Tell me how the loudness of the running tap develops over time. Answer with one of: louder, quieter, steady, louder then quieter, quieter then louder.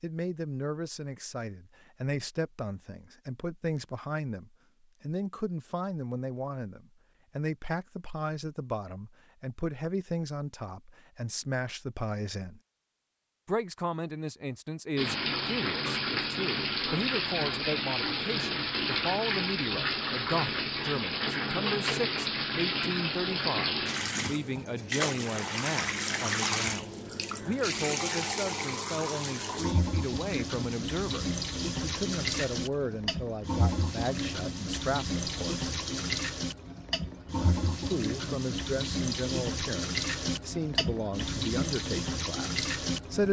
steady.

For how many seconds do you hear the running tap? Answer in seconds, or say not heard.
28 s.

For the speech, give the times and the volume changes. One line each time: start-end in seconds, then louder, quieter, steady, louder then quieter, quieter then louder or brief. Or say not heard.
0.0-12.6 steady
13.4-35.7 steady
37.4-43.2 quieter.